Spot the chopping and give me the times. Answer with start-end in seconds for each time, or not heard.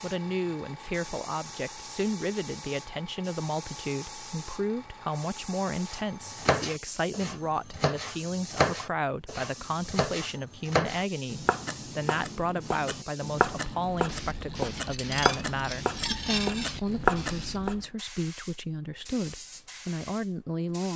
5.9-17.8.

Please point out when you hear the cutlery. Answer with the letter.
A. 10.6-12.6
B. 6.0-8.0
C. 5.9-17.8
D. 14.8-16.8
D.